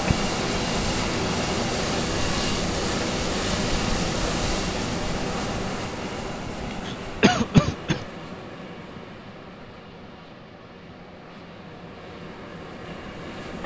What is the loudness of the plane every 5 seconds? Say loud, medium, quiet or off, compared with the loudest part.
loud, medium, quiet.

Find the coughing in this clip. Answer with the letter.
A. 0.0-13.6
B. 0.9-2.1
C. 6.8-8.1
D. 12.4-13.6
C.